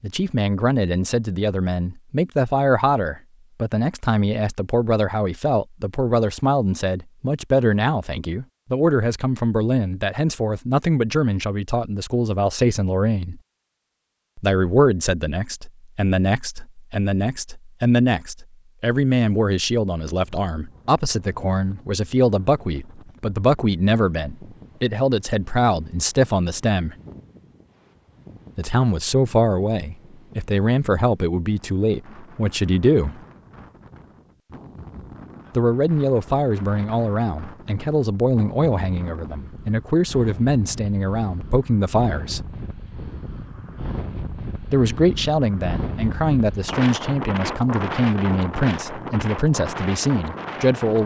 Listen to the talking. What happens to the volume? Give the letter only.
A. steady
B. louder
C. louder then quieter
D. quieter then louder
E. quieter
A.